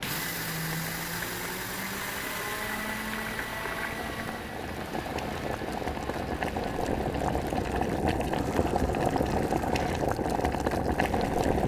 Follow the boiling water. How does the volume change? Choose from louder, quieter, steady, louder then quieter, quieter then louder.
louder.